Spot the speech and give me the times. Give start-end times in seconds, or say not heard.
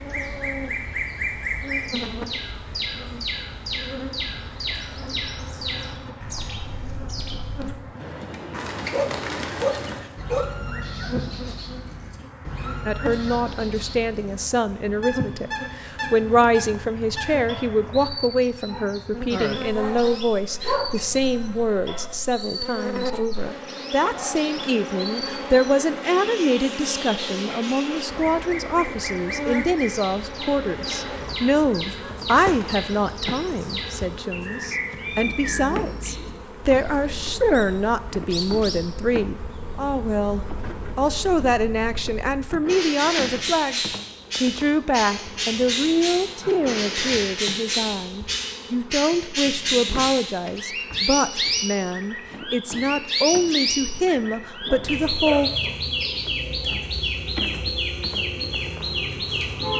12.8-55.5.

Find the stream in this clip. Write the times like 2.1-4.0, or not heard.
not heard.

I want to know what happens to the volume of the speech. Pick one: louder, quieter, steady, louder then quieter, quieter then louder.
steady.